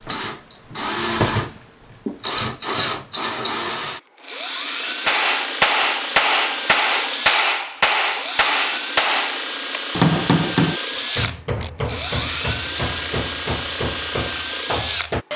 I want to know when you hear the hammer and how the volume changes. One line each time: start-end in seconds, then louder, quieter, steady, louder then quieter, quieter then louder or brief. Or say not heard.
5.0-15.2 quieter.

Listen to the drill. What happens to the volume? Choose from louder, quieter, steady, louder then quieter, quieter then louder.
steady.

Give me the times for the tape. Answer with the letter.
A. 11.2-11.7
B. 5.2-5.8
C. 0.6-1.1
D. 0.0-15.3
A.